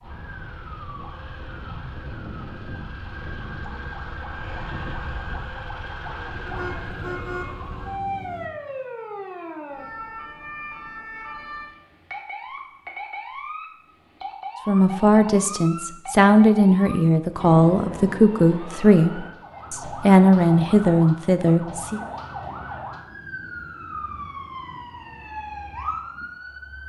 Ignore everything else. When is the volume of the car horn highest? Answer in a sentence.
The volume of the car horn peaks at 7 seconds.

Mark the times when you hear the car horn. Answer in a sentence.
You can hear the car horn from 6.5 to 8.5 s.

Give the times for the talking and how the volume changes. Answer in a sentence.
You can hear the talking from 14.7 to 22.0 s, at a steady volume.